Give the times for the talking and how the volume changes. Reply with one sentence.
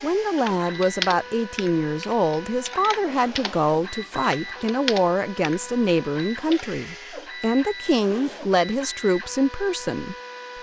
The talking can be heard from 0.0 to 10.2 s, at a steady volume.